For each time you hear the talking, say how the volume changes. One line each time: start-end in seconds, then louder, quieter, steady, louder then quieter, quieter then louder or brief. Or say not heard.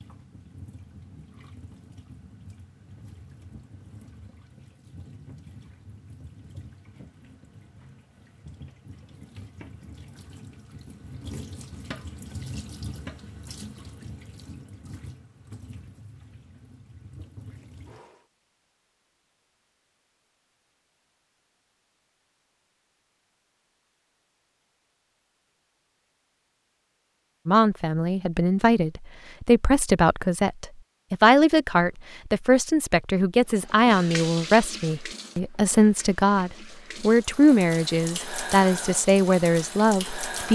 27.4-40.5 steady.